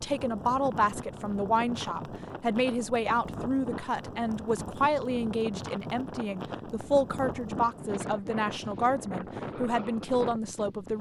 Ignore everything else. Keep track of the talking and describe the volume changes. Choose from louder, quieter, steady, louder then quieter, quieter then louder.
steady.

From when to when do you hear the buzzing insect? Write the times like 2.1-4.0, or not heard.
not heard.